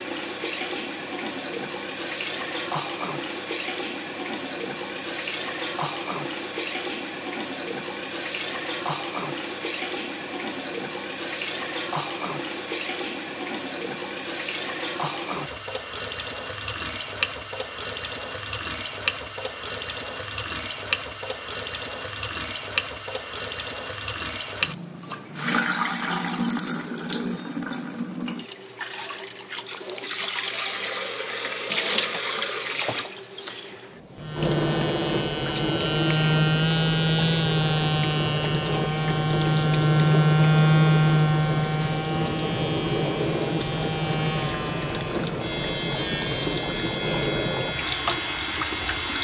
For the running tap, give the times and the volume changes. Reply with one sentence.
The running tap can be heard from 0.0 to 49.1 s, at a steady volume.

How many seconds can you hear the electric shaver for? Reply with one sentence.
You can hear the electric shaver for 15 seconds altogether.